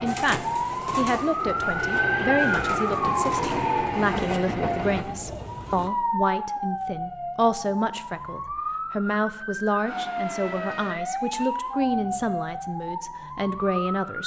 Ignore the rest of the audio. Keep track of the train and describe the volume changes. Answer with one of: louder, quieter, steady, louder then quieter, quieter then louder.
louder.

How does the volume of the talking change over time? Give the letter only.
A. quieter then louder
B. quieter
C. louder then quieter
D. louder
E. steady
E.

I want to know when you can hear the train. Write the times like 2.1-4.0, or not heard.
0.0-5.0.